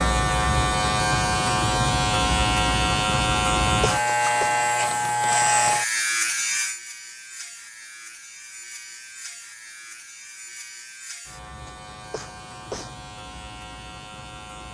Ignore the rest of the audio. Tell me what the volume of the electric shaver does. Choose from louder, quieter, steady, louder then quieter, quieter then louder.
quieter.